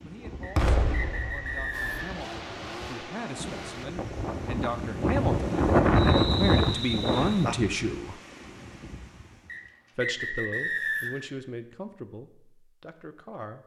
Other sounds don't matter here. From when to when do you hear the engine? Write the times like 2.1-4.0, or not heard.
1.7-3.9.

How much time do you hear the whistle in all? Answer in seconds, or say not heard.
5 s.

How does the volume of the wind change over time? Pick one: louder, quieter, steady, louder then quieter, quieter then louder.
louder then quieter.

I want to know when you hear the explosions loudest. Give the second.
1 s.